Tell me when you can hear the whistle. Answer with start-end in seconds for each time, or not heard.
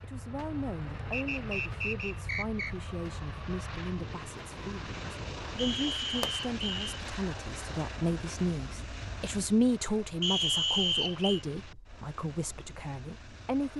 1.1-2.7, 5.5-7.0, 10.2-11.4.